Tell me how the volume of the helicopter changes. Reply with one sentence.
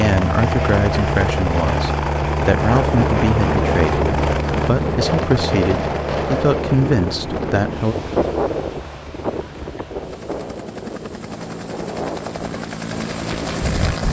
The loudness of the helicopter goes down, then up.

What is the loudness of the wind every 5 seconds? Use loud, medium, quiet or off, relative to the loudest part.
loud, loud, medium.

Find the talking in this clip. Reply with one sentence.
The talking can be heard from 0.0 to 8.0 s.